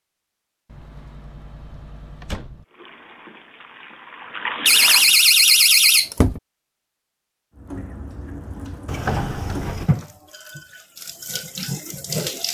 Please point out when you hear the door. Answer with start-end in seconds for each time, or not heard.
0.7-2.6, 4.7-6.4, 8.8-9.9.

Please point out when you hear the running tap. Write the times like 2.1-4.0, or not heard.
2.6-5.2, 7.5-12.4.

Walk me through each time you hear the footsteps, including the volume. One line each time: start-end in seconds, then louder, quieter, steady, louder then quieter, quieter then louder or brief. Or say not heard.
not heard.